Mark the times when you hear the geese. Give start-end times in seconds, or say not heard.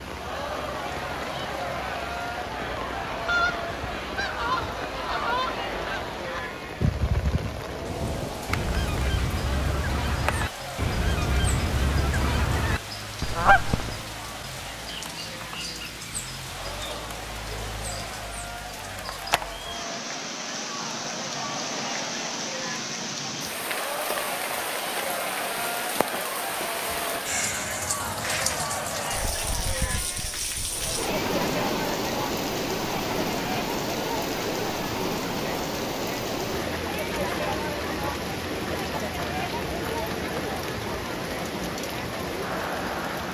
3.1-14.0.